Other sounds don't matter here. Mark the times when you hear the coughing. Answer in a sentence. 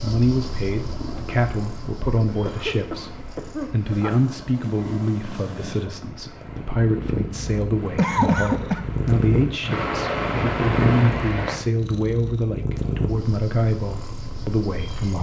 The coughing can be heard from 2.2 to 4.1 s and from 8.0 to 8.8 s.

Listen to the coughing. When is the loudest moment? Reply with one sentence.
The loudest moment of the coughing is at 8 seconds.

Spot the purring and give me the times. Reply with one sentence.
You can hear the purring from 0.0 to 15.1 s.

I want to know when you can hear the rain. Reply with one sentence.
The rain can be heard from 0.0 to 11.6 s.